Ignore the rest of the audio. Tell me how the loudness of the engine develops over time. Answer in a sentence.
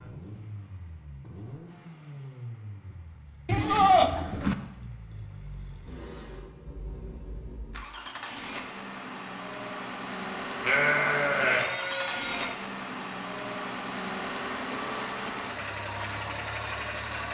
The loudness of the engine goes up.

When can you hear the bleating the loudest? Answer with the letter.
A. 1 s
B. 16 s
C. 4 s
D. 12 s
C.